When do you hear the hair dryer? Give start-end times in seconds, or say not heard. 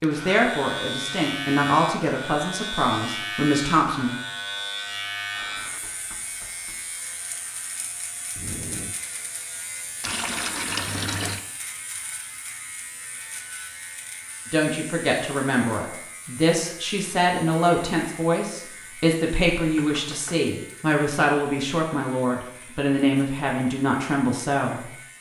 5.3-10.2.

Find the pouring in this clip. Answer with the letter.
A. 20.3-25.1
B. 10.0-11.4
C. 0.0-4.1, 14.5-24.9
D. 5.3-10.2
B.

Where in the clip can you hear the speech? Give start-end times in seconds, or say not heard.
0.0-4.1, 14.5-24.9.